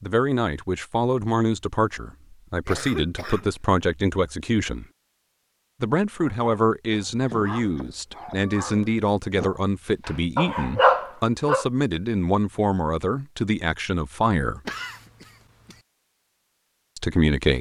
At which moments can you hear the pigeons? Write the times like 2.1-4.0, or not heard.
not heard.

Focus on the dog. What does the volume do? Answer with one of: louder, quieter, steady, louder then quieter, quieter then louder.
louder.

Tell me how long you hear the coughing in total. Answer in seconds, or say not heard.
3 s.